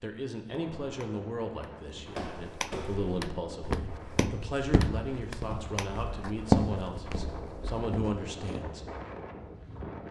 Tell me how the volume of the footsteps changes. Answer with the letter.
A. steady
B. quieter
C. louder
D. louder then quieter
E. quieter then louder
D.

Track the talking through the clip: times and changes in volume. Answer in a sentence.
You can hear the talking from 0.0 to 8.9 s, at a steady volume.